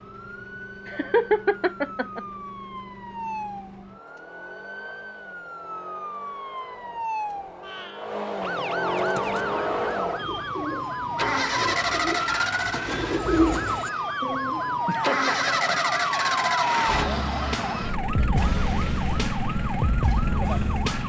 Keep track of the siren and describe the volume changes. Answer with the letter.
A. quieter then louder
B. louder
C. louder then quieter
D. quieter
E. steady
B.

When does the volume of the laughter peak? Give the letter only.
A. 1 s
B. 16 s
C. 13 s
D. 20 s
A.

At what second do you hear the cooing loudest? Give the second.
13 s.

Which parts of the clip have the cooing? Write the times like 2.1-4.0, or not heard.
8.9-14.8.